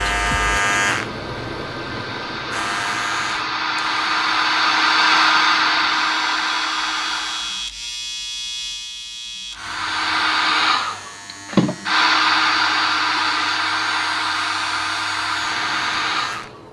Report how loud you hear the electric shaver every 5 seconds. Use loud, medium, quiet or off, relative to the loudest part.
loud, medium, medium, medium.